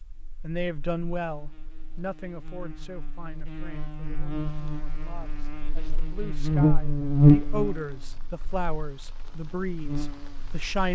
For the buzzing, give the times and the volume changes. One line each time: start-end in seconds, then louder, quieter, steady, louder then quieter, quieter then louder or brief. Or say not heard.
0.0-10.9 louder then quieter.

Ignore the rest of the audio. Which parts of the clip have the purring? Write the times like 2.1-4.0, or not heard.
not heard.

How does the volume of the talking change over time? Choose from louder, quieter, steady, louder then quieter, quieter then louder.
quieter then louder.